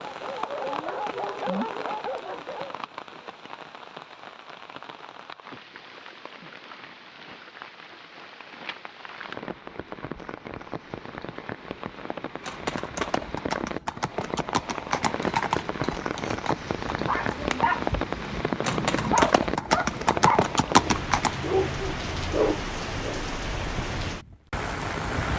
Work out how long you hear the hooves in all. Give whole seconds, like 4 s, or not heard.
9 s.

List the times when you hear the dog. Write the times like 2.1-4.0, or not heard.
0.0-2.9, 16.9-23.2.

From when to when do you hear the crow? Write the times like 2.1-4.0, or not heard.
not heard.